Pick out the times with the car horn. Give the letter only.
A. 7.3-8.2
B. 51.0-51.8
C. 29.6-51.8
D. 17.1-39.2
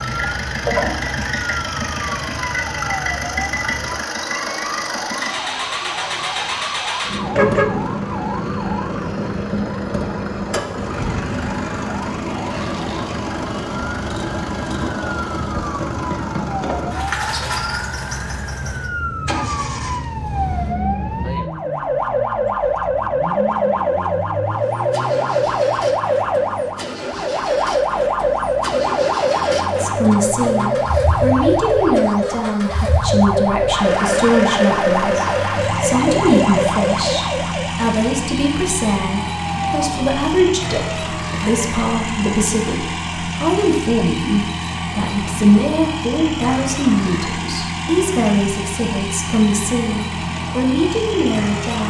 A.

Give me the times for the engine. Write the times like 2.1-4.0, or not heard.
0.0-51.8.